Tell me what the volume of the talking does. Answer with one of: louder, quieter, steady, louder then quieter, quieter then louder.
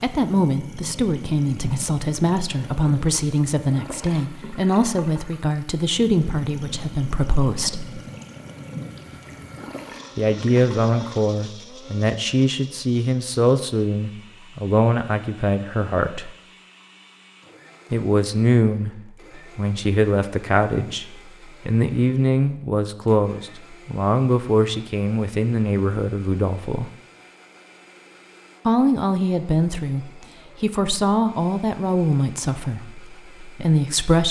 steady.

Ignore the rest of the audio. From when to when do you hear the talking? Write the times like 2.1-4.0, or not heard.
0.0-8.0, 10.2-16.3, 17.9-26.9, 28.6-34.2.